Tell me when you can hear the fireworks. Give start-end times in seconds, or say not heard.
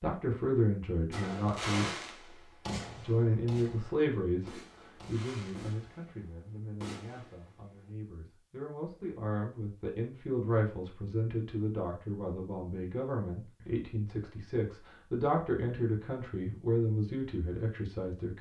1.1-7.9.